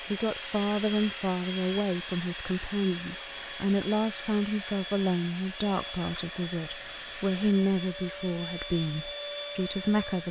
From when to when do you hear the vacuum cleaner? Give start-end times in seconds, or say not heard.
0.0-10.2.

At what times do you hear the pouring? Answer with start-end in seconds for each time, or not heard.
not heard.